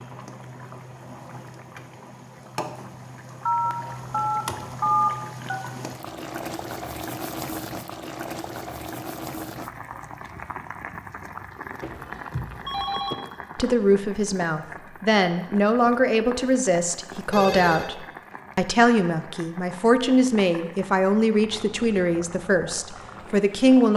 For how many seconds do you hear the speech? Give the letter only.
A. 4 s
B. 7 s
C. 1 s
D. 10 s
D.